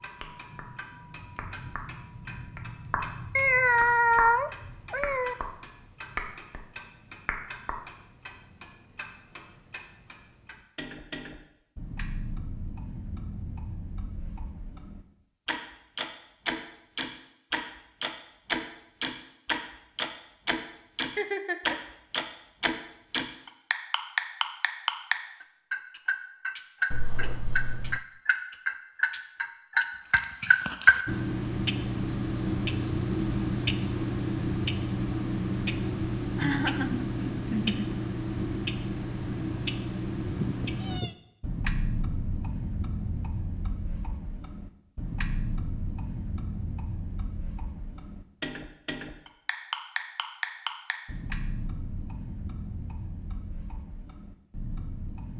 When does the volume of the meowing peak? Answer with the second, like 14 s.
4 s.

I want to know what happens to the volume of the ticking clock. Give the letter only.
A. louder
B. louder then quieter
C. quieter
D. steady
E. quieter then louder
B.